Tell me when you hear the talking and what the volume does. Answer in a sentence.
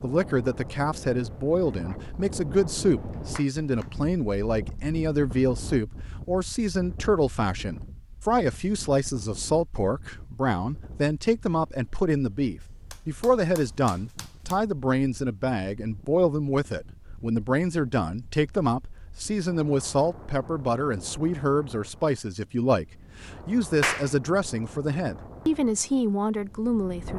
The talking can be heard from 0.0 to 27.1 s, at a steady volume.